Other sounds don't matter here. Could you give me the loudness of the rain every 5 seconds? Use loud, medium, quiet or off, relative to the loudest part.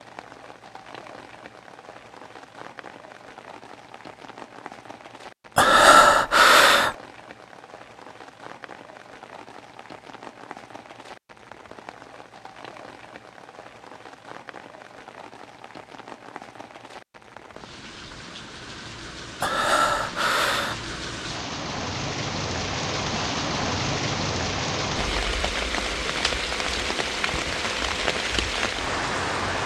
quiet, quiet, quiet, quiet, loud, loud.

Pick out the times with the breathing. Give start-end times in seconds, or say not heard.
5.5-7.0, 19.4-20.8.